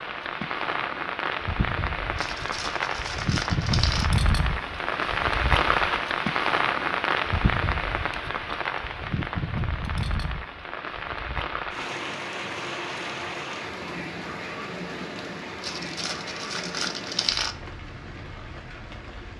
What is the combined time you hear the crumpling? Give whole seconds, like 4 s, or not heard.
4 s.